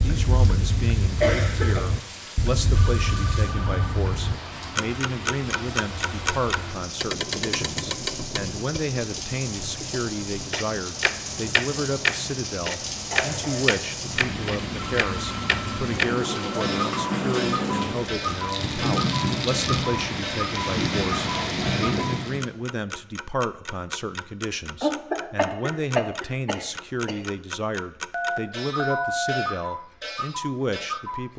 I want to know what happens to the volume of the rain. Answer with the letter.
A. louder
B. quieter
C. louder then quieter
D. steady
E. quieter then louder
A.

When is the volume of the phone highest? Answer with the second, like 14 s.
29 s.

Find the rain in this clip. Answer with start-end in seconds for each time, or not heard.
0.0-22.4.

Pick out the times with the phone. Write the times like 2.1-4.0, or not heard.
2.8-4.0, 14.8-16.8, 28.1-29.5.